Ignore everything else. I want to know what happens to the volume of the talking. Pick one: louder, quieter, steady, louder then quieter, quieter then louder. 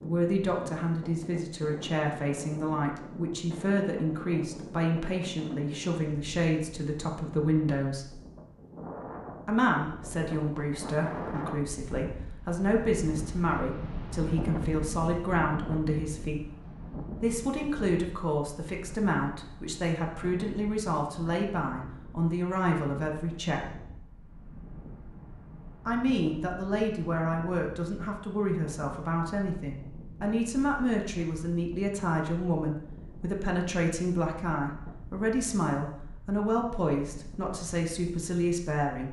steady.